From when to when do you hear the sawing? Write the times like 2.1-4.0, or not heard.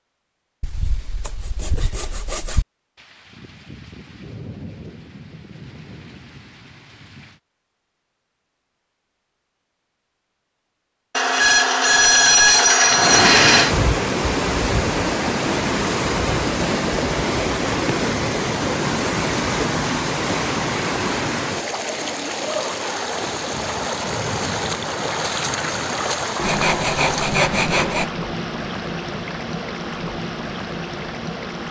0.6-2.6, 11.2-13.8, 26.4-28.1.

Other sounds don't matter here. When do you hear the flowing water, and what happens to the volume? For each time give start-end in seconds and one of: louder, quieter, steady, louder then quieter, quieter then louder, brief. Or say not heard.
12.8-31.6 quieter.